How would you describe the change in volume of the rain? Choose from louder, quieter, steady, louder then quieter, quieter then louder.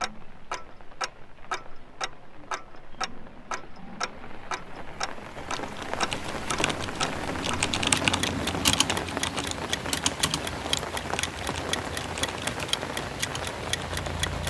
louder.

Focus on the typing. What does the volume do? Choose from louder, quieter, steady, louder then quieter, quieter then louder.
louder then quieter.